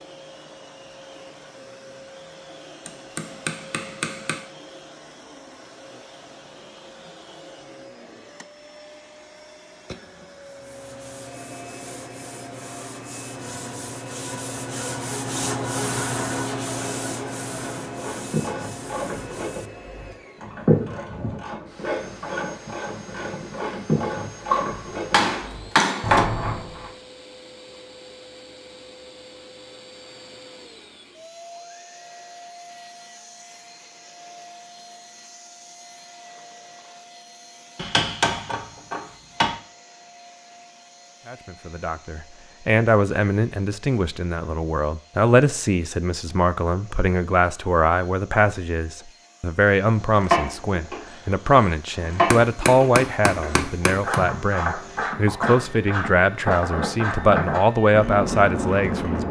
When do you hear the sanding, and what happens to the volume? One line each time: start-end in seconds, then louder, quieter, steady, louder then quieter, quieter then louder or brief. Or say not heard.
10.4-19.9 louder then quieter.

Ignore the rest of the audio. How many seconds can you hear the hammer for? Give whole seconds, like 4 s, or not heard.
7 s.